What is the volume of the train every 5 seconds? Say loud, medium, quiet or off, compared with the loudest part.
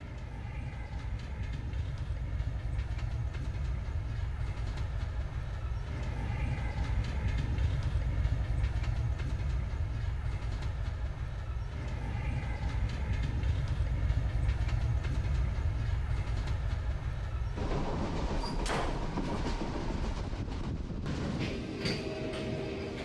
medium, loud, loud, loud, loud.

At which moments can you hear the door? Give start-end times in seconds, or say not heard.
18.4-19.4.